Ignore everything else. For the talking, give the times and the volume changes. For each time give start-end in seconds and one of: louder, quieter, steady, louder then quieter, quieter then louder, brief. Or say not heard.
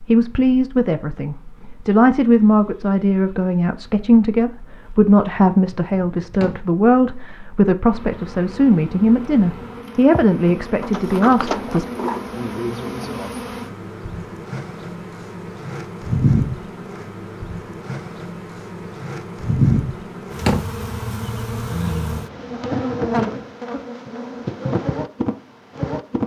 0.1-11.8 steady.